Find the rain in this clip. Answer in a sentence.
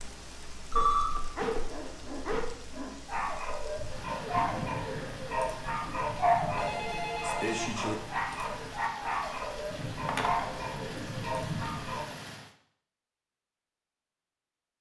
The rain can be heard from 0.0 to 12.6 s.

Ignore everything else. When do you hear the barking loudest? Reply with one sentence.
The loudest moment of the barking is at 6 seconds.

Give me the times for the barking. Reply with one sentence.
The barking can be heard from 0.7 to 12.1 s.